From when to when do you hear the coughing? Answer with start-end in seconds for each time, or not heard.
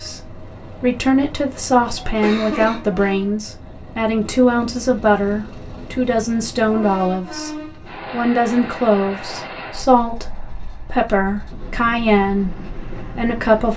2.2-2.9.